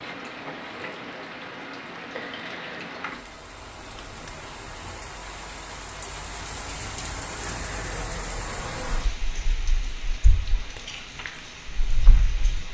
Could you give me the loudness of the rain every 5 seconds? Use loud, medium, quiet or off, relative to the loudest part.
loud, loud, medium.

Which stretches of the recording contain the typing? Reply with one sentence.
You can't hear the typing here.